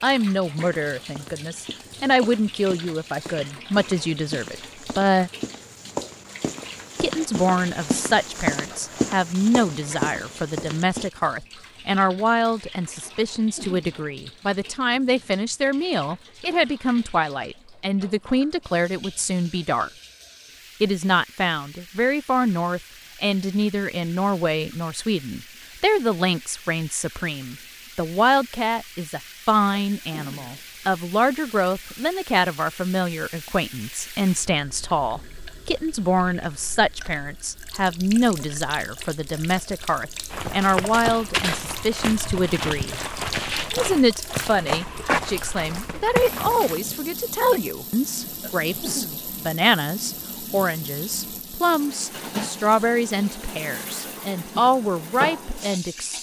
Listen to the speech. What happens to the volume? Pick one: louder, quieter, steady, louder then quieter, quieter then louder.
steady.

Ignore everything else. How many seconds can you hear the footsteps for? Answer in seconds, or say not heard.
17 s.